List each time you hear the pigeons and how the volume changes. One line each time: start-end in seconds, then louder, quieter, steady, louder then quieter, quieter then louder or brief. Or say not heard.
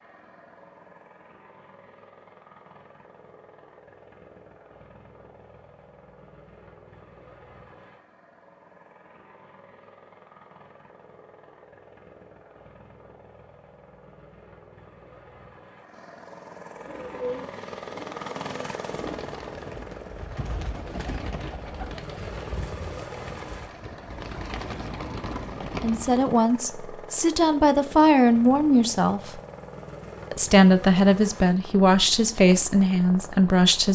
16.8-26.4 quieter then louder.